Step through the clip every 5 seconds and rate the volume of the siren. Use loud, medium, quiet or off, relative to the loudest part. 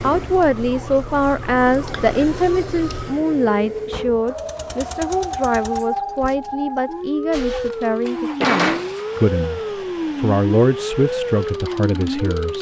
medium, loud, loud.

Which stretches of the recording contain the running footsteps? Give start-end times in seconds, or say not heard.
not heard.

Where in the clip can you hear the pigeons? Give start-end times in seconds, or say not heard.
not heard.